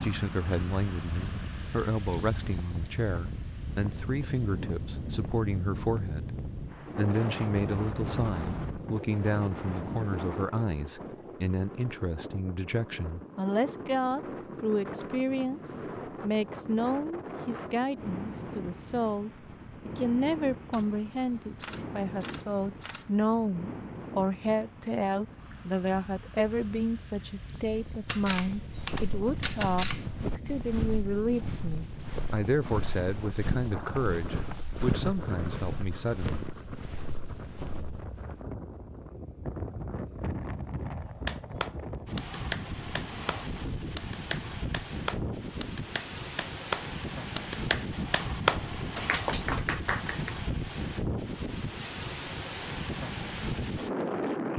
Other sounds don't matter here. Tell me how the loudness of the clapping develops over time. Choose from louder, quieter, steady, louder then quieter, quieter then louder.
louder.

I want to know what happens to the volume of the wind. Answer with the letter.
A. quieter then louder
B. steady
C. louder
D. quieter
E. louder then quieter
A.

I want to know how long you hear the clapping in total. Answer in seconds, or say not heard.
9 s.